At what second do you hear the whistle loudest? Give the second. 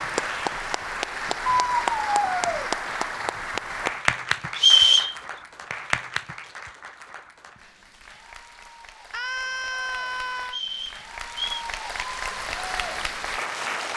5 s.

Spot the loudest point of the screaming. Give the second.
2 s.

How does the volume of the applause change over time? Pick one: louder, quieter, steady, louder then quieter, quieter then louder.
quieter then louder.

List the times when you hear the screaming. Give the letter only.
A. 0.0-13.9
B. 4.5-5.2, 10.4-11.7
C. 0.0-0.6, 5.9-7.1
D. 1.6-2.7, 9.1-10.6
D.